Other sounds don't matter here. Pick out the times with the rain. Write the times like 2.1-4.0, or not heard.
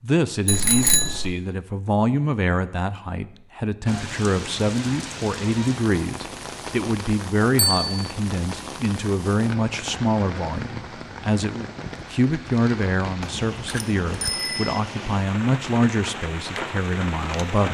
3.9-17.7.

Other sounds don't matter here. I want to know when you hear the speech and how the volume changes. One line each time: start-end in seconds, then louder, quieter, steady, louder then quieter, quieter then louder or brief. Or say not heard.
0.0-17.7 steady.